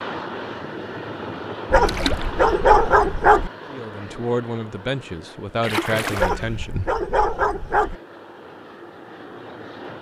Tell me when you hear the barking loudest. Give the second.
3 s.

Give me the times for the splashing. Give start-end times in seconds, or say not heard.
1.9-2.3, 5.6-6.7.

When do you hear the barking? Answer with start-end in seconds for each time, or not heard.
1.7-3.5, 6.2-8.0.